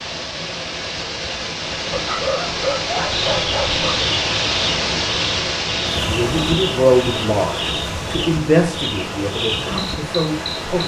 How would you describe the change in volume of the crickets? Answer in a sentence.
The loudness of the crickets stays about the same.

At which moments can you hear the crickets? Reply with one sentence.
You can hear the crickets from 3.1 to 10.8 s.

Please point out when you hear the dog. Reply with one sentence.
The dog can be heard from 1.9 to 4.0 s.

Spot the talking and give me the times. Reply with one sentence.
The talking can be heard from 6.0 to 10.8 s.